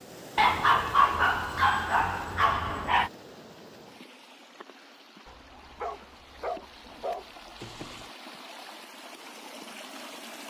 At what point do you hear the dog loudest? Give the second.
1 s.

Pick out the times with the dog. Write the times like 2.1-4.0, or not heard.
0.3-3.1, 5.2-8.1.